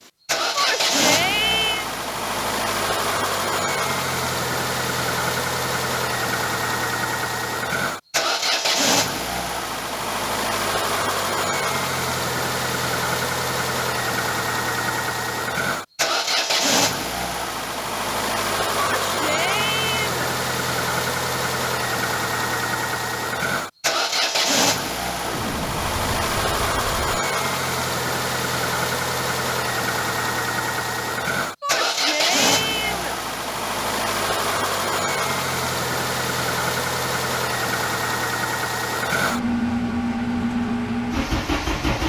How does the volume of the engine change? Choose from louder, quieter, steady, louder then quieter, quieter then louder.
steady.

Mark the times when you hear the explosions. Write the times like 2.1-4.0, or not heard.
25.2-27.2.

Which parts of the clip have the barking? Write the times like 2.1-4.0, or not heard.
not heard.